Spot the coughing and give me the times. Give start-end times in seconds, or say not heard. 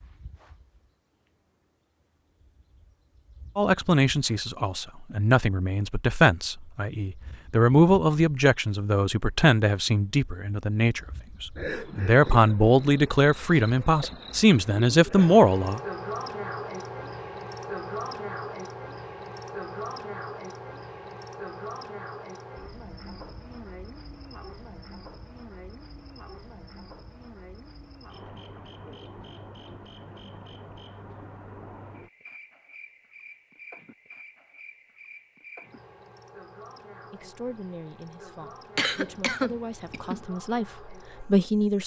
38.8-40.2.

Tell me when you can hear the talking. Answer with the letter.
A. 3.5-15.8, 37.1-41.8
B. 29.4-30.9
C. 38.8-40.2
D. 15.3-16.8
A.